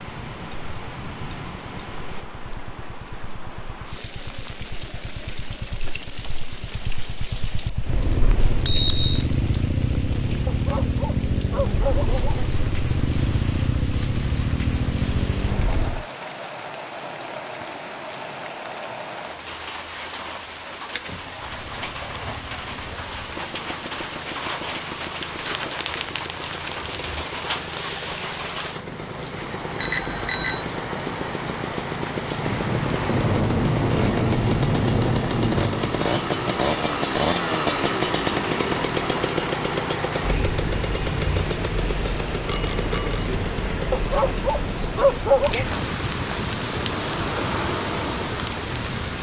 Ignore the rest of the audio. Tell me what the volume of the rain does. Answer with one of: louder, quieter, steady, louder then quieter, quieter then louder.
louder.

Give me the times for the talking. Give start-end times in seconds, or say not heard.
not heard.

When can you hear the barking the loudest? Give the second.
45 s.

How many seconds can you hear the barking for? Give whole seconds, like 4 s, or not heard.
4 s.